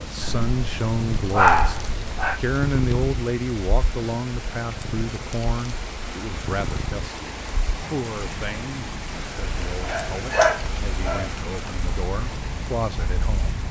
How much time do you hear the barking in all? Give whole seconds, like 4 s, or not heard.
4 s.